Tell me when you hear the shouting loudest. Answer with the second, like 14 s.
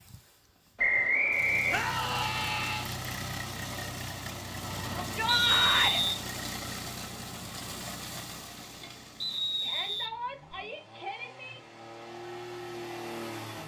6 s.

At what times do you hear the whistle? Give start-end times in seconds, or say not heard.
0.8-1.8, 5.2-6.1, 9.2-10.6.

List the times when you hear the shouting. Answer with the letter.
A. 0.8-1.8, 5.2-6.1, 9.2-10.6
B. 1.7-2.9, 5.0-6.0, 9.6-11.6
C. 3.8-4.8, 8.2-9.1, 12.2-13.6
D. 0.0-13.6
B.